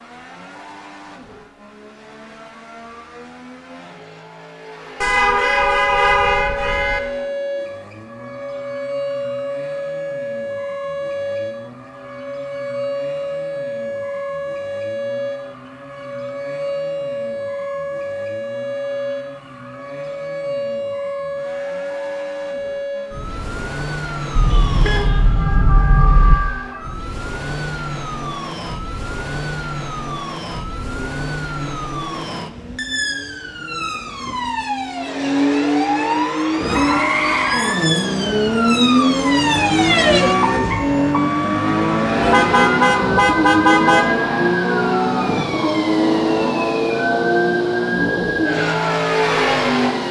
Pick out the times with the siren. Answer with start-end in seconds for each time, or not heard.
5.5-50.0.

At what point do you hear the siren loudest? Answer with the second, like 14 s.
40 s.